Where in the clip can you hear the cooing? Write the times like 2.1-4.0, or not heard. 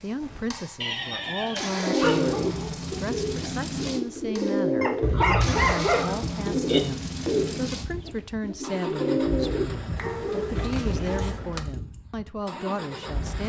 1.7-11.2.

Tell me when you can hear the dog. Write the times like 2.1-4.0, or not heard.
2.0-2.8, 4.8-6.2, 9.9-11.4.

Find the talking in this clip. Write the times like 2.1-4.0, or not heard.
0.0-13.4.